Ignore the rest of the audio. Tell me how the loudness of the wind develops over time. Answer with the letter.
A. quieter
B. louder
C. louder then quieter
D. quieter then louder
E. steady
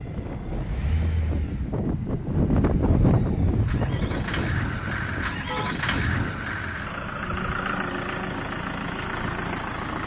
C.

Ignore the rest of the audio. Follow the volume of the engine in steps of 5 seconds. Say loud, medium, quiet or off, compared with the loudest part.
medium, loud.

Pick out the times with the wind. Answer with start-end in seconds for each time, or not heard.
0.0-6.7.